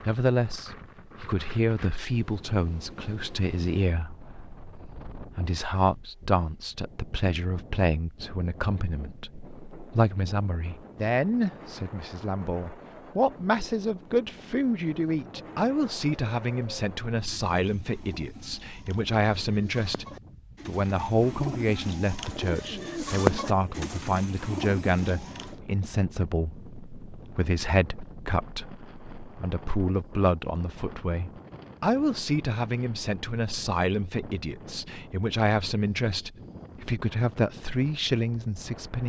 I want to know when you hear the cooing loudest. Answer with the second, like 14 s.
23 s.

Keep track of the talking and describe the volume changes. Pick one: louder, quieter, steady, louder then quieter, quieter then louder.
steady.